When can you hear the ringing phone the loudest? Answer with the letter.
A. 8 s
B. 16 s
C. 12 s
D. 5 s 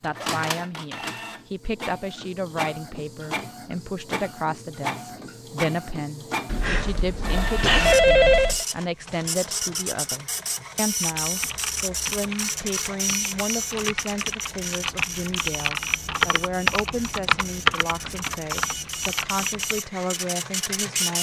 A.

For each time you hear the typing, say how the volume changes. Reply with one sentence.
The typing can be heard from 11.0 to 19.8 s, getting louder then quieter.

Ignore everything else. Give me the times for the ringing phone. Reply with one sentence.
You can hear the ringing phone from 6.5 to 8.7 s.